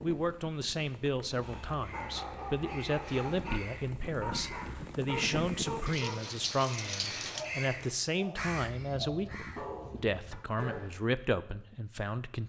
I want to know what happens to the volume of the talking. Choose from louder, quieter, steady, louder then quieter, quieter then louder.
steady.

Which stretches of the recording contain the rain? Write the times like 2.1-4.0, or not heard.
0.0-7.5.